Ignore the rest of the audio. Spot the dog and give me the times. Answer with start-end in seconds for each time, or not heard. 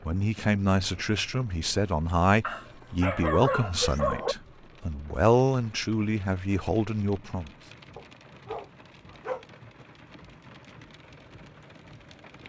2.4-4.3, 8.0-9.4.